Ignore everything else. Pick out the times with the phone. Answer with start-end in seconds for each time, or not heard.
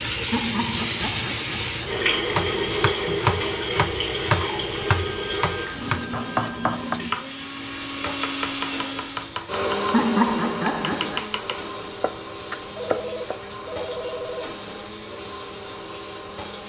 4.9-6.8, 12.8-14.5.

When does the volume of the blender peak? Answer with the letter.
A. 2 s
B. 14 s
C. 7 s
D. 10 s
D.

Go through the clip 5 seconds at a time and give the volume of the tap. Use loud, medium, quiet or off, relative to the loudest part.
loud, medium, quiet, quiet.